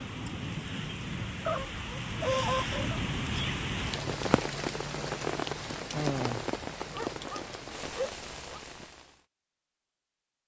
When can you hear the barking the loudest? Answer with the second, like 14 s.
2 s.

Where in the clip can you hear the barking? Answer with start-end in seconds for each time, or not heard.
1.4-3.0, 6.9-8.6.